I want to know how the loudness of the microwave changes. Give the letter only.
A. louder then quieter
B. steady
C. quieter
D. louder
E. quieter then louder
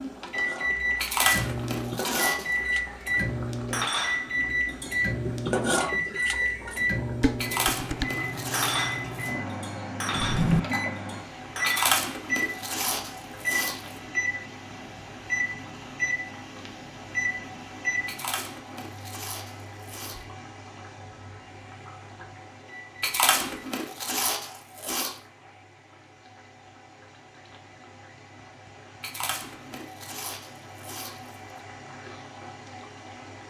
C.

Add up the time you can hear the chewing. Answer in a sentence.
The chewing can be heard for 12 seconds in total.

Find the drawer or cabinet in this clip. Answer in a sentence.
The drawer or cabinet can be heard from 10.1 to 10.6 s.